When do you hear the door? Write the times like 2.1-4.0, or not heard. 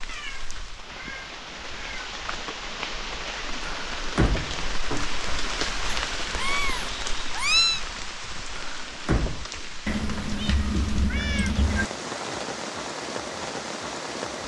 3.6-5.1, 8.6-9.4.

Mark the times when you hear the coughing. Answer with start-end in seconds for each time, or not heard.
not heard.